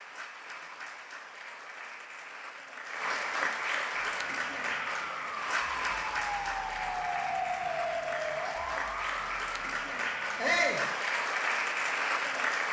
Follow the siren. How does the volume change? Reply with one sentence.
The loudness of the siren goes up, then down.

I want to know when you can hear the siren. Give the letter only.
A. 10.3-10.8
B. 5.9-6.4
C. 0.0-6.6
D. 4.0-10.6
D.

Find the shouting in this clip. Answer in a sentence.
The shouting can be heard from 10.3 to 10.8 s.